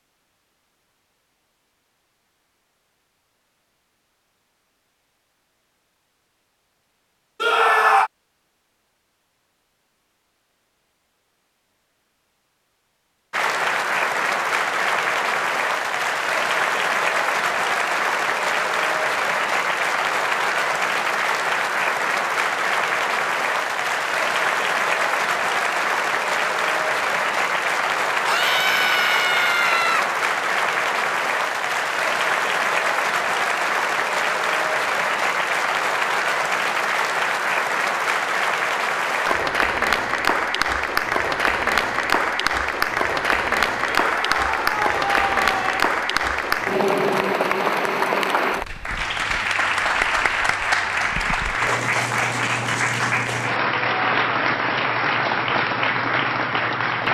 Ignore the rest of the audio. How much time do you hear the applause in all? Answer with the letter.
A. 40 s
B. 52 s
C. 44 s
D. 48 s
C.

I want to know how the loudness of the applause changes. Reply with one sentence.
The volume of the applause stays about the same.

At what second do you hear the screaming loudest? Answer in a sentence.
The loudest moment of the screaming is at 8 seconds.